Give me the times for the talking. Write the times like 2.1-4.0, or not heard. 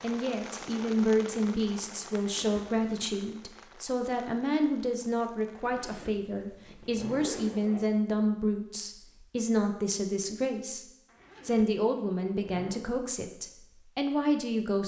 0.0-10.8, 11.4-14.8.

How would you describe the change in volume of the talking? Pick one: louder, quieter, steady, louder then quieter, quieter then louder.
steady.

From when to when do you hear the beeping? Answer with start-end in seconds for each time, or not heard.
not heard.